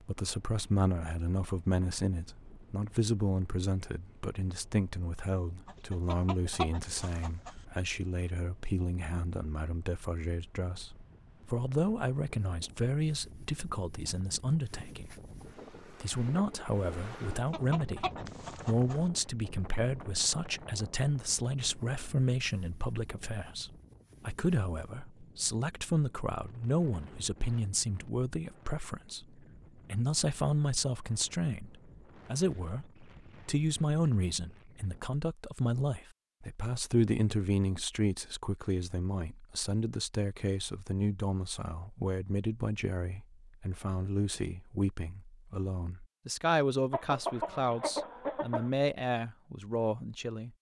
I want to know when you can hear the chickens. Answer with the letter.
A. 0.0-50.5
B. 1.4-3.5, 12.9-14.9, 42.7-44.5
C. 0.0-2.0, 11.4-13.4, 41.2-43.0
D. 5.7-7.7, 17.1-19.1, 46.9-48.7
D.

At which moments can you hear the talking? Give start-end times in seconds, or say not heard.
0.0-50.5.